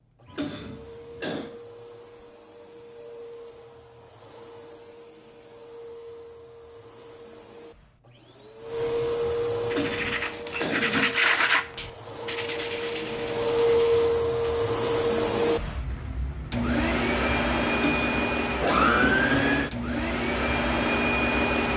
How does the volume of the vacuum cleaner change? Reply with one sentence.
The loudness of the vacuum cleaner goes up.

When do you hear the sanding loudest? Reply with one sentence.
The volume of the sanding peaks at 11 seconds.